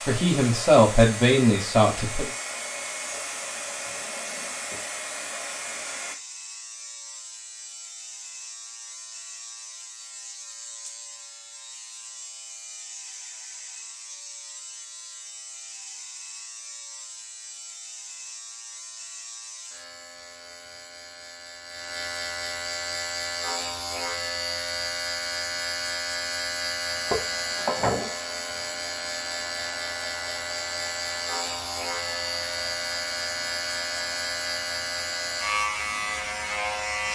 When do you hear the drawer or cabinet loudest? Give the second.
28 s.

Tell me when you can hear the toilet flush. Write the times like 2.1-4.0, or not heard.
not heard.